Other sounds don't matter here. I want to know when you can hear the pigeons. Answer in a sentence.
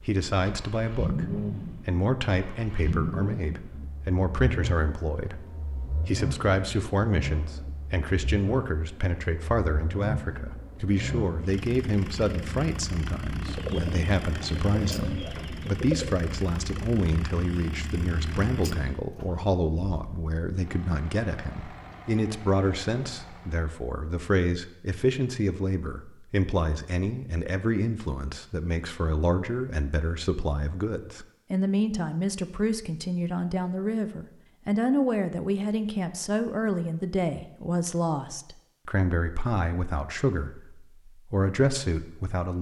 The pigeons can be heard from 13.4 to 16.1 s.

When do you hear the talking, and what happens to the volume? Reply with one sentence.
The talking can be heard from 0.1 to 42.5 s, at a steady volume.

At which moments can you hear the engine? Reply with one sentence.
You can hear the engine from 0.0 to 23.7 s.